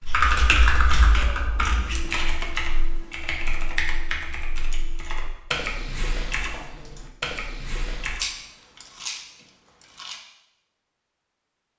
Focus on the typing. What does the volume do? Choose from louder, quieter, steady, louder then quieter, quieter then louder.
quieter.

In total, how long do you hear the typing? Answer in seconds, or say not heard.
8 s.